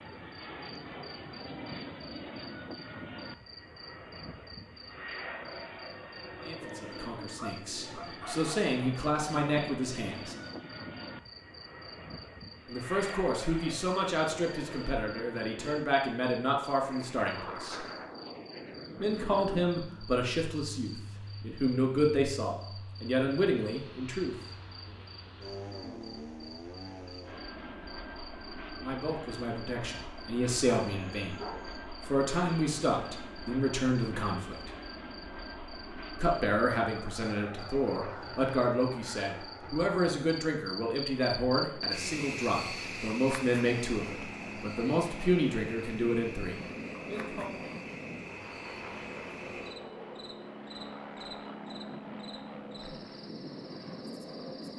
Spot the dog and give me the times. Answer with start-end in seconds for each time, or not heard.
7.3-8.7, 30.8-31.8.